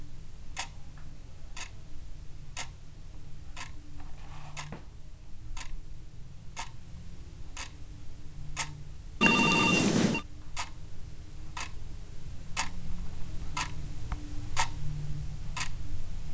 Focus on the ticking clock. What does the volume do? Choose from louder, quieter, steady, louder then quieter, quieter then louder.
louder.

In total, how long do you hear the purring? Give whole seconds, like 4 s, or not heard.
not heard.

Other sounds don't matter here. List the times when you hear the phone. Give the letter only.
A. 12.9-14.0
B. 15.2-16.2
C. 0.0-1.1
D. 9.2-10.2
D.